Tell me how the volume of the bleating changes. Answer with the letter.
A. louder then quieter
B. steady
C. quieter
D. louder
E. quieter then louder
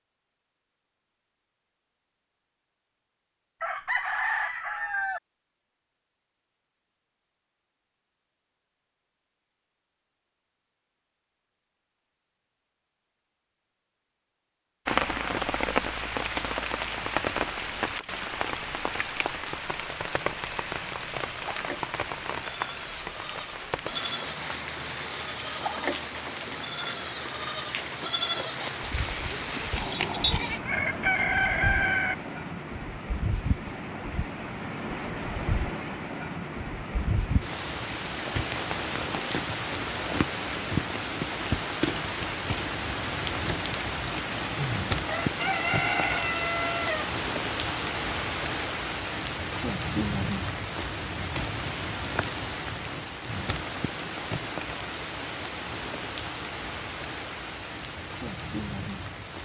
D.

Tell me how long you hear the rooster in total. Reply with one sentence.
The rooster can be heard for 5 seconds in total.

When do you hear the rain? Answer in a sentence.
You can hear the rain from 14.8 to 59.4 s.